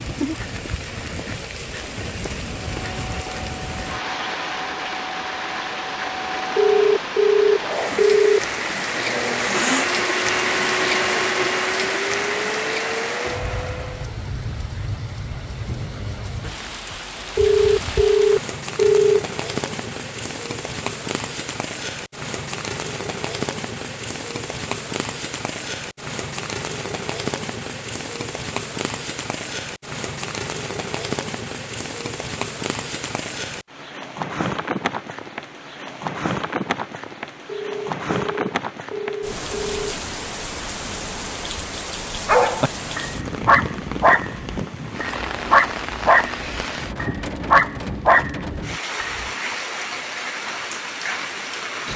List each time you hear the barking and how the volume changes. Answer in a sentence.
You can hear the barking from 42.2 to 49.3 s, at a steady volume.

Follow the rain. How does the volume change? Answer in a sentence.
The volume of the rain stays about the same.